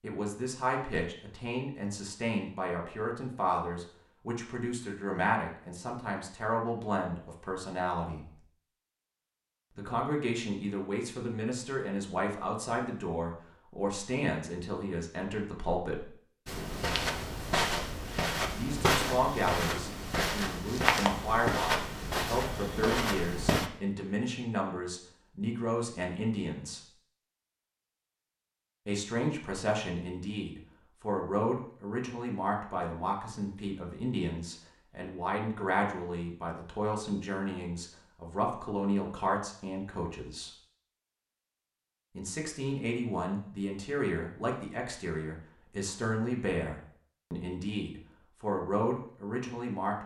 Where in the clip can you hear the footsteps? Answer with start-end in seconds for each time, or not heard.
16.4-23.7.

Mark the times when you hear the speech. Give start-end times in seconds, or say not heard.
0.0-8.3, 9.8-16.1, 18.6-26.9, 28.9-40.5, 42.1-50.0.